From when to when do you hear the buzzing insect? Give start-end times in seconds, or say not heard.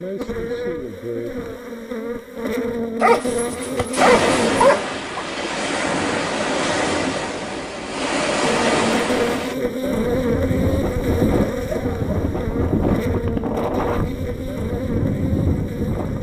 0.0-4.8, 8.4-16.1.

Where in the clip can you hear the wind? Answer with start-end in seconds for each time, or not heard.
4.0-16.1.